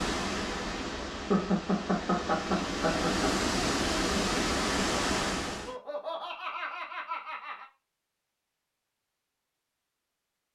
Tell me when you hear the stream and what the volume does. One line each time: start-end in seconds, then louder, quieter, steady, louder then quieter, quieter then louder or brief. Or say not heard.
0.0-5.8 louder.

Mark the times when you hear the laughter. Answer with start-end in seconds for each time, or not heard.
1.3-3.3, 5.5-7.7.